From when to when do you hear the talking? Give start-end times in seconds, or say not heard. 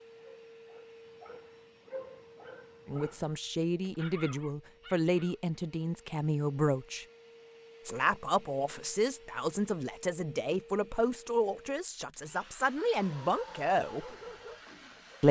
2.9-7.0, 7.8-14.1.